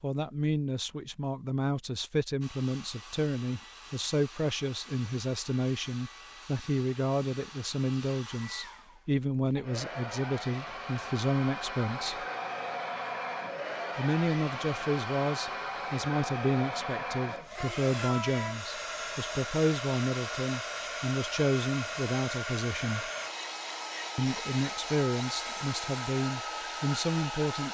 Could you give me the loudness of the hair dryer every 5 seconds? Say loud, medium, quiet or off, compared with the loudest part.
quiet, medium, loud, loud, loud, loud.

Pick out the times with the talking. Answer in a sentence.
The talking can be heard from 0.0 to 12.2 s, from 13.9 to 23.1 s and from 24.1 to 27.6 s.